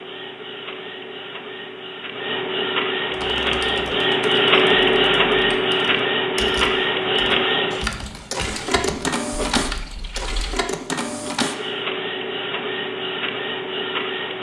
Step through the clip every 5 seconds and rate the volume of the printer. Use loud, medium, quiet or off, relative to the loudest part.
loud, loud, medium.